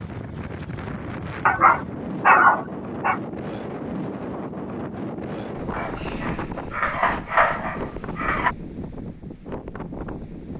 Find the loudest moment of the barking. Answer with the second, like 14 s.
2 s.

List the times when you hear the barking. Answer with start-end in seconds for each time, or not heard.
1.4-3.2, 5.7-8.6.